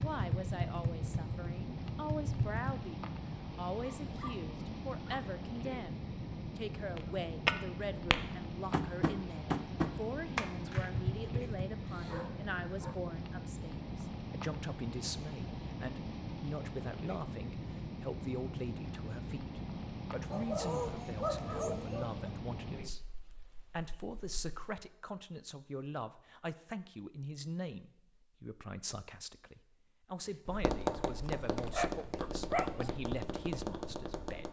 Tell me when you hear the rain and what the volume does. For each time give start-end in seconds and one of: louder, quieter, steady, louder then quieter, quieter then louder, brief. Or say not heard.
0.0-24.8 steady.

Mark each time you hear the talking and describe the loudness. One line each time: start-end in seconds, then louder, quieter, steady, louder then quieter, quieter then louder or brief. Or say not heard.
0.0-34.4 steady.